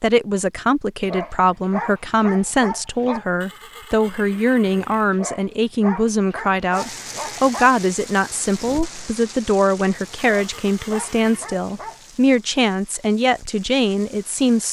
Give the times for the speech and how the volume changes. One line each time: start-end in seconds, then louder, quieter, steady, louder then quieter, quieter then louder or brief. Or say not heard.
0.0-14.6 steady.